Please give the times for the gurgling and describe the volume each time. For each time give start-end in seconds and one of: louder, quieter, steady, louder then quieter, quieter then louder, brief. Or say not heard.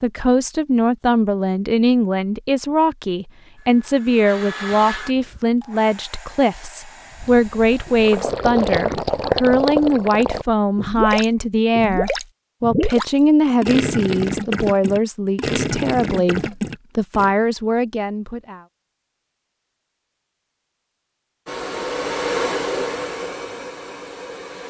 7.1-17.3 steady.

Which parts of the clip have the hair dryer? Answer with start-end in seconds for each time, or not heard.
3.5-8.2, 21.4-24.6.